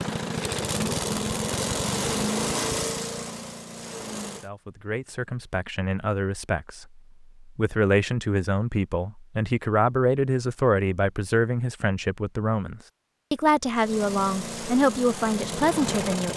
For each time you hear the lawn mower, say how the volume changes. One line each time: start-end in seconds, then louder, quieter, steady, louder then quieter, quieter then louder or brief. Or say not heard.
0.0-4.5 quieter
13.8-16.3 brief.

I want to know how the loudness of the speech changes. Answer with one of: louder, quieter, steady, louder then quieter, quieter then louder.
louder.